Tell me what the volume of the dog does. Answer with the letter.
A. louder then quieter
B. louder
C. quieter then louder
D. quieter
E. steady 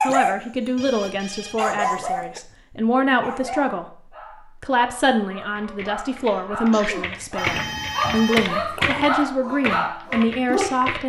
C.